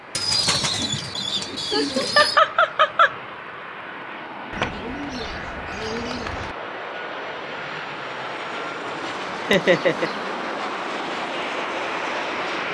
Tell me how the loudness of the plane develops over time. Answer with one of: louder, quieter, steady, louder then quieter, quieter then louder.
louder.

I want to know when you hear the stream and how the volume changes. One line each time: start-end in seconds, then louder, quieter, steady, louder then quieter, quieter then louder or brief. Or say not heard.
not heard.